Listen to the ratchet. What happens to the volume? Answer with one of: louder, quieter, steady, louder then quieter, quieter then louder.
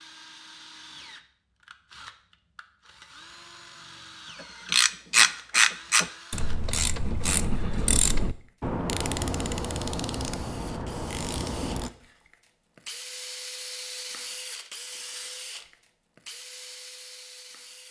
quieter.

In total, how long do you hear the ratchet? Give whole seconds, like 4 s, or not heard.
7 s.